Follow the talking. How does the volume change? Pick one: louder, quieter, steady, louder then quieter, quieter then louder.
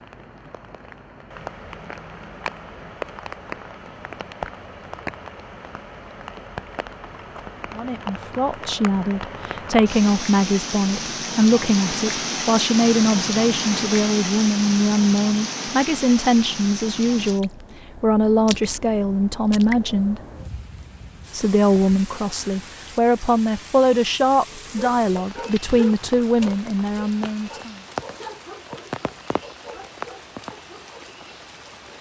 steady.